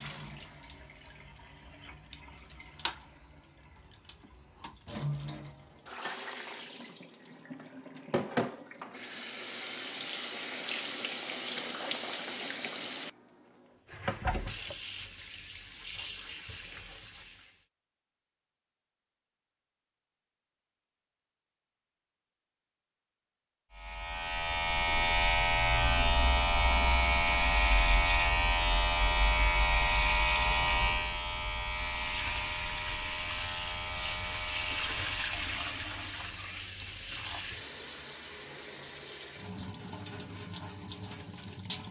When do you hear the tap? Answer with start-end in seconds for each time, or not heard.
0.0-17.6, 31.9-41.8.